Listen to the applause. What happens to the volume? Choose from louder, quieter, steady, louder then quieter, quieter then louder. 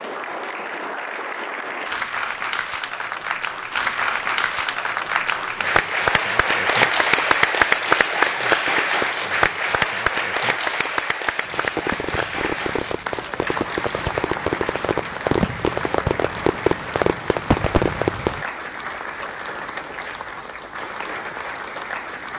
louder then quieter.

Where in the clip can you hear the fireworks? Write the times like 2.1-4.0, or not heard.
11.4-18.4.